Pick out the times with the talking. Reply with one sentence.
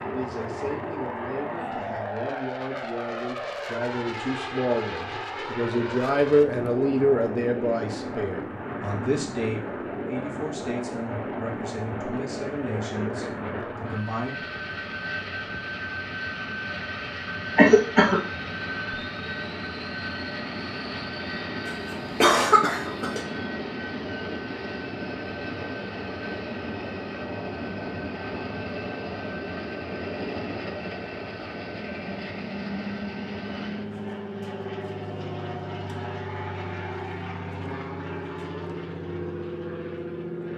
You can hear the talking from 0.0 to 14.4 s.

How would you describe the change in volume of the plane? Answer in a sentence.
The loudness of the plane stays about the same.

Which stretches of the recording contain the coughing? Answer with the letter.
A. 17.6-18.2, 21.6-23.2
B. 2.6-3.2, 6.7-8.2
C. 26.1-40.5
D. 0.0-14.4
A.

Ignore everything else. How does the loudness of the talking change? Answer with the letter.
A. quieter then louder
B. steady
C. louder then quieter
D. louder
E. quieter
C.